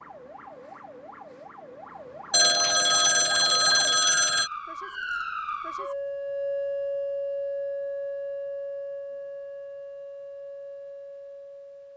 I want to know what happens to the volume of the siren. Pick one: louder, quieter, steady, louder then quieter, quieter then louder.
louder then quieter.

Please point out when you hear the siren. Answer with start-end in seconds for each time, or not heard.
0.0-11.9.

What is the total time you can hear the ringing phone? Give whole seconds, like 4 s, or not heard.
2 s.